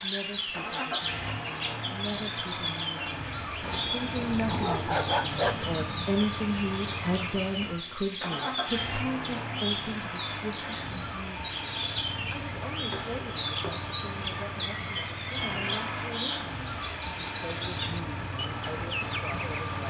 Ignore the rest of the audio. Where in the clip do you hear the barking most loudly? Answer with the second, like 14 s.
5 s.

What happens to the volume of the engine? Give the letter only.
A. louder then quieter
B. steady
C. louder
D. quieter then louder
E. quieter
B.